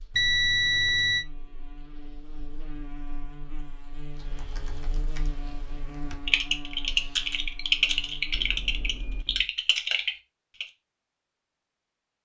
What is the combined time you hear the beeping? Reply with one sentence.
You can hear the beeping for 2 seconds altogether.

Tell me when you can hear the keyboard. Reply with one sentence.
The keyboard can be heard from 4.2 to 10.7 s.